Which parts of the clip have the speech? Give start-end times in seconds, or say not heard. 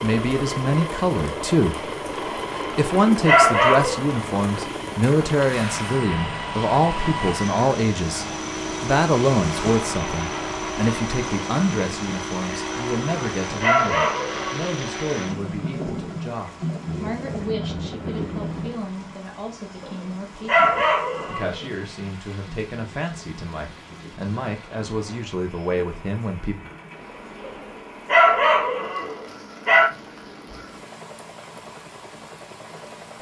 0.0-1.9, 2.5-26.6.